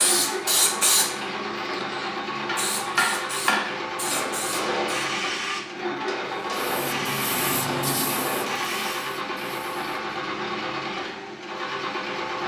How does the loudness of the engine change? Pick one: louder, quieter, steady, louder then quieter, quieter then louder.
steady.